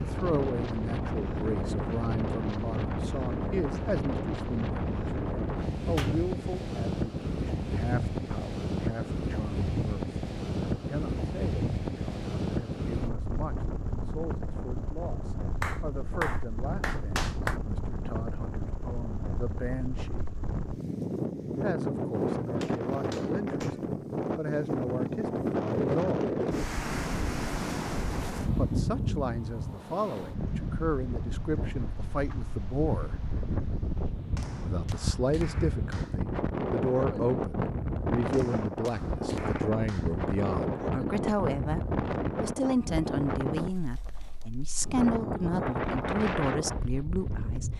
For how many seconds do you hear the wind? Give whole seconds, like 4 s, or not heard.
48 s.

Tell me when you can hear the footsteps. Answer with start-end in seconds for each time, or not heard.
not heard.